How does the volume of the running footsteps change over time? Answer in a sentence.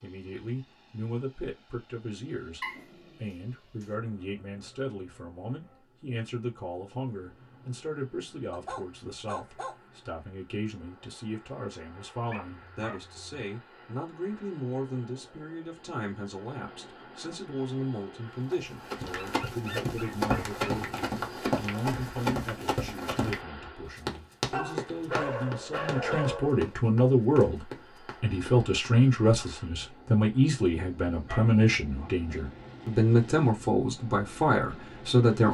The loudness of the running footsteps goes down.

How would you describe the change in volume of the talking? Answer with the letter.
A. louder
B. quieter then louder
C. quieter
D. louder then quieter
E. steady
A.